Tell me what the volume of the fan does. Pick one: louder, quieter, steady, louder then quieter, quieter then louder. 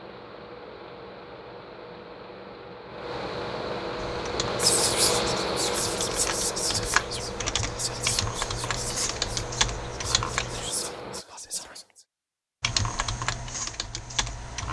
louder then quieter.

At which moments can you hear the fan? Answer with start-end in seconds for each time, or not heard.
0.0-11.2.